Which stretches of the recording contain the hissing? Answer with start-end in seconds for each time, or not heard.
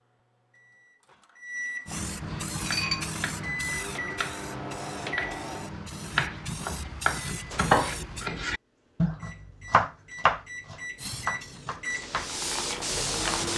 1.9-8.3, 10.9-13.5.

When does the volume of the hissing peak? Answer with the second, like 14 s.
13 s.